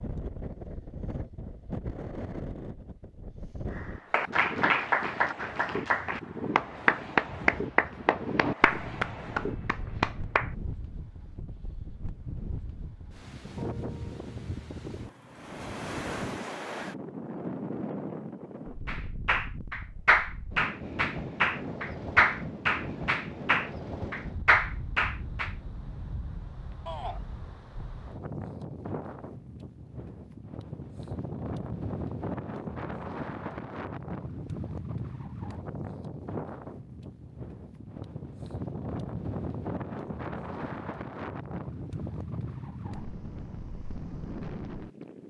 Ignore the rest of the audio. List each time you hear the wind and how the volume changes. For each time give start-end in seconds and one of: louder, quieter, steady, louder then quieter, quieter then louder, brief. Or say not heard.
0.0-45.2 steady.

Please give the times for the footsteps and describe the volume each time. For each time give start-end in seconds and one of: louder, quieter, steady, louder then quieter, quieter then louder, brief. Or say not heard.
not heard.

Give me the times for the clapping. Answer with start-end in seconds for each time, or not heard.
3.8-10.5, 18.9-25.6.